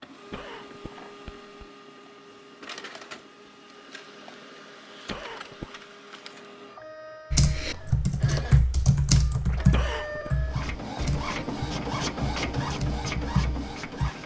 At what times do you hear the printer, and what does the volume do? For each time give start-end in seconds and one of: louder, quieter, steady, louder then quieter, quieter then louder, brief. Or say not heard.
0.0-14.2 louder.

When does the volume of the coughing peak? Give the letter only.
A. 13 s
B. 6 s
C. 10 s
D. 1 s
C.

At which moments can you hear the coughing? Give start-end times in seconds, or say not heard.
0.3-1.7, 5.0-5.8, 9.7-10.3.